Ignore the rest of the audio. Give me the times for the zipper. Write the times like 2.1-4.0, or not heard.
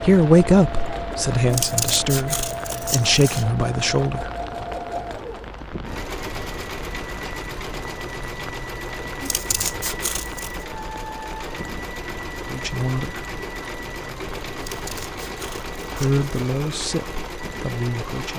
not heard.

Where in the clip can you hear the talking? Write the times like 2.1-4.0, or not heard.
0.0-4.3, 12.4-13.2, 15.9-18.3.